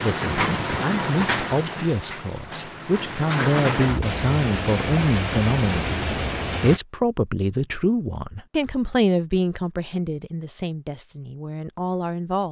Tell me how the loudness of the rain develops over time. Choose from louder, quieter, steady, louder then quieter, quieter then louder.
quieter then louder.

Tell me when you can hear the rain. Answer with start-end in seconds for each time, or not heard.
0.0-6.8.